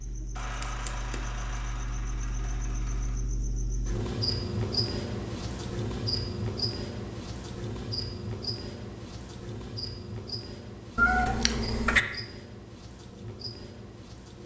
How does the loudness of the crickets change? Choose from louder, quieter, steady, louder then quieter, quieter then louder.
louder then quieter.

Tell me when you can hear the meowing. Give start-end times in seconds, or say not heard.
10.9-12.1.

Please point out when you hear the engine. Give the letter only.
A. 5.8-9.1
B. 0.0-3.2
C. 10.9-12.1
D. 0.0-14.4
B.